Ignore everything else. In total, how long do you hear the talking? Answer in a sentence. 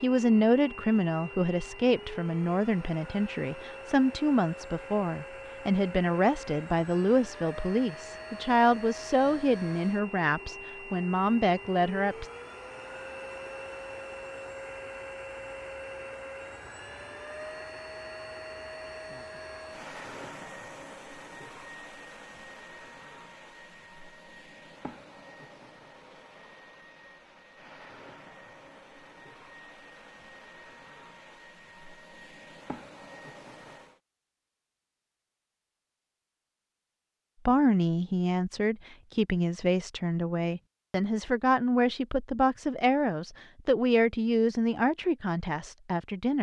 You can hear the talking for 21 seconds altogether.